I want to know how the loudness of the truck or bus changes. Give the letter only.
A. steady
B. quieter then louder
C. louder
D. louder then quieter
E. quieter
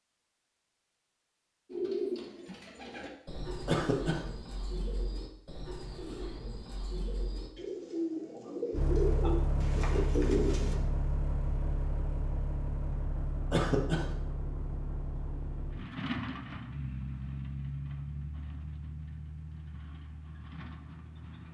E.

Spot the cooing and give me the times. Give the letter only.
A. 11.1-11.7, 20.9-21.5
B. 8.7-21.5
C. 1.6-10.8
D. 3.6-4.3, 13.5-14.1
C.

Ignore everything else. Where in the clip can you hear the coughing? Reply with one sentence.
The coughing can be heard from 3.6 to 4.3 s and from 13.5 to 14.1 s.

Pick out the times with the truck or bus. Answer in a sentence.
You can hear the truck or bus from 8.7 to 21.5 s.